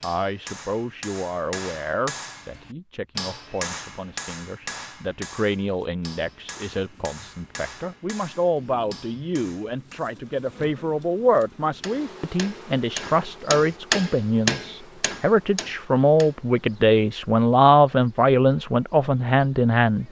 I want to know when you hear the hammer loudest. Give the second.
14 s.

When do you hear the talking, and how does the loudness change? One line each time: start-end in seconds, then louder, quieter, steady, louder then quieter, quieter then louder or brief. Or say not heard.
0.0-20.0 louder.